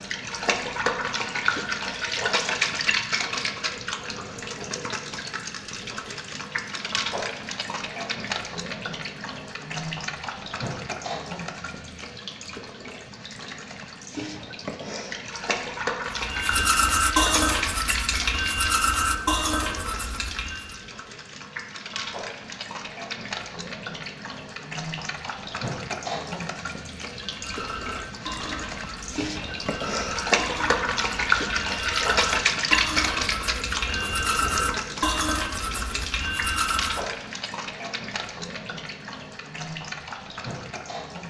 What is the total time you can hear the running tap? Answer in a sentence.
You can hear the running tap for 41 seconds altogether.